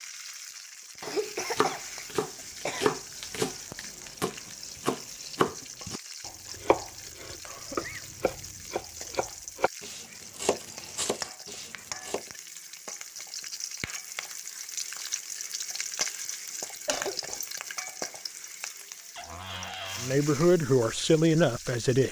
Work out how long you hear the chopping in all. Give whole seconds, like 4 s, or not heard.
11 s.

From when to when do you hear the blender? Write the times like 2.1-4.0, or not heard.
not heard.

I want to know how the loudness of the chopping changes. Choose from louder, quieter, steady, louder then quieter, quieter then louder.
quieter.